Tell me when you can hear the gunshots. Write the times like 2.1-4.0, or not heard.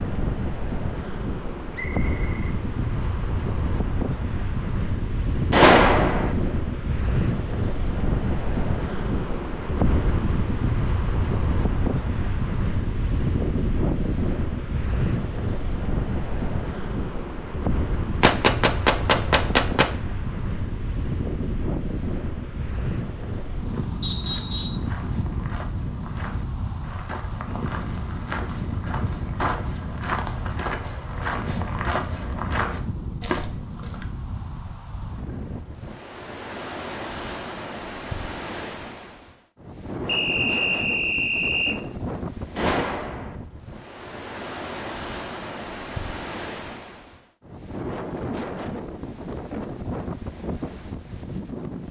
5.5-6.3, 18.2-19.9, 42.5-43.4.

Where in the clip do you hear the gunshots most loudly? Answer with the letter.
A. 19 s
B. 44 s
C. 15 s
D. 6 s
D.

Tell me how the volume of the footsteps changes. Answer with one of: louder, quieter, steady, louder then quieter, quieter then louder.
louder.